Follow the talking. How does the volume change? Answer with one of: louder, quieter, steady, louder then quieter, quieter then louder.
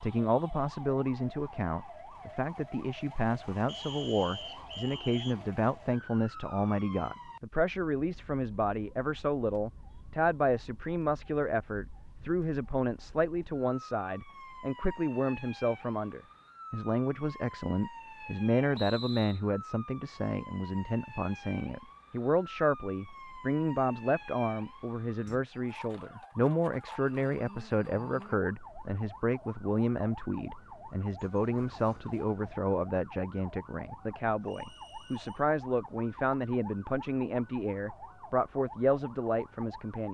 steady.